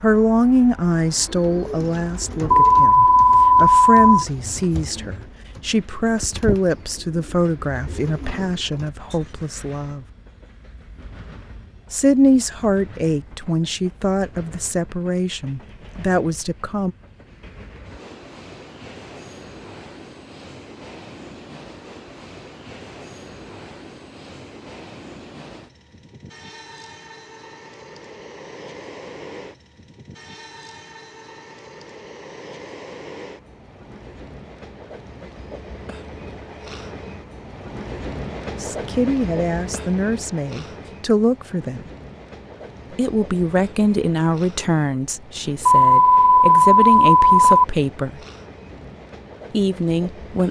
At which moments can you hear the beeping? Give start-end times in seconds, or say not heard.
2.5-4.2, 45.6-47.6.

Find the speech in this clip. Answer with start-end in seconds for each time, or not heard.
0.0-10.1, 11.9-16.9, 38.6-41.9, 43.0-48.2, 49.5-50.4.